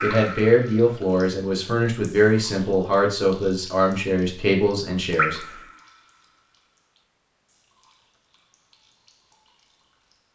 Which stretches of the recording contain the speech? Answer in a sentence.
You can hear the speech from 0.0 to 5.4 s.